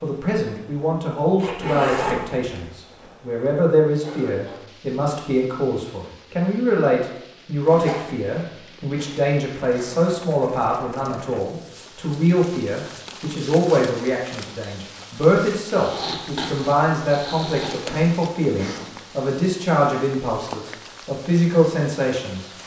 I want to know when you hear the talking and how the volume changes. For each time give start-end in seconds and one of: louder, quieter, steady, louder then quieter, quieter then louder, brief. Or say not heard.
0.0-22.5 steady.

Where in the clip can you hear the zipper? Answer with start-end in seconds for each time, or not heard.
1.4-2.6, 7.6-8.3, 15.8-17.8.